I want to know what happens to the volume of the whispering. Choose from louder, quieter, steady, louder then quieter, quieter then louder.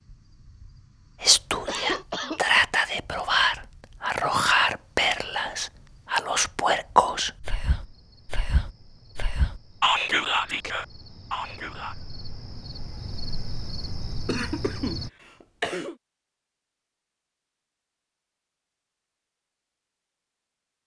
quieter then louder.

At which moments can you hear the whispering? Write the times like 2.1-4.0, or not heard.
1.2-11.9.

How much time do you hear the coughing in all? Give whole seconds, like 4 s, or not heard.
3 s.